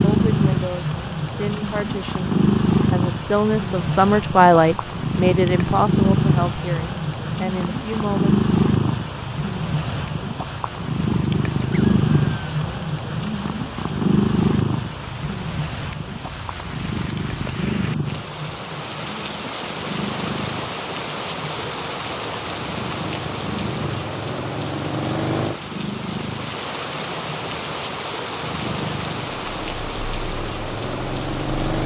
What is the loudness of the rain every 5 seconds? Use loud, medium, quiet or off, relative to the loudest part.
quiet, quiet, quiet, medium, loud, loud, loud.